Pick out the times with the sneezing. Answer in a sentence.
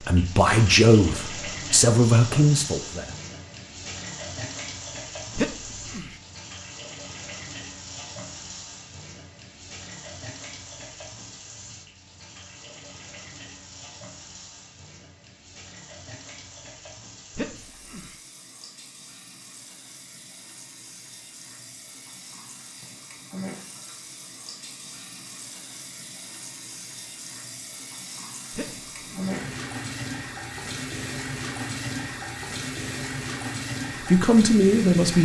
You can hear the sneezing from 5.3 to 6.2 s, from 17.3 to 18.1 s and from 28.5 to 29.4 s.